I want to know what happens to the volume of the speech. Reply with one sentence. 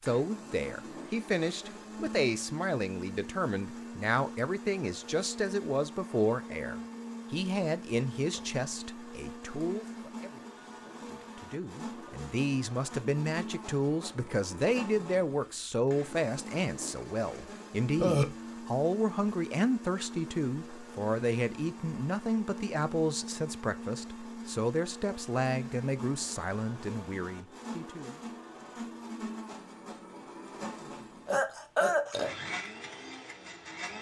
The loudness of the speech stays about the same.